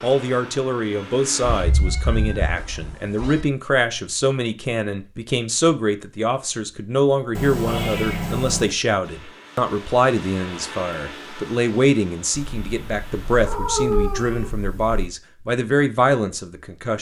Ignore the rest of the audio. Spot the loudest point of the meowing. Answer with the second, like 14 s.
14 s.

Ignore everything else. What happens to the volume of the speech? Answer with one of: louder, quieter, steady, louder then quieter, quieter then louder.
steady.